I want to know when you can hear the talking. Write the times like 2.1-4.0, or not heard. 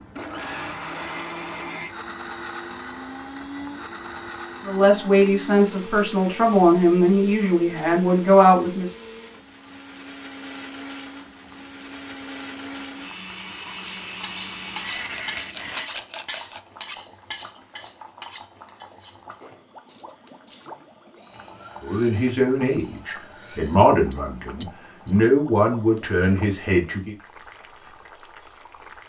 4.7-8.9, 21.8-27.1.